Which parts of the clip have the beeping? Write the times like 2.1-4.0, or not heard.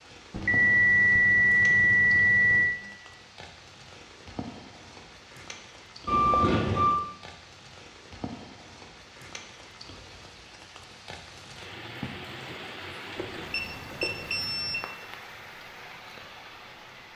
0.3-2.8, 6.0-7.0, 13.2-14.8.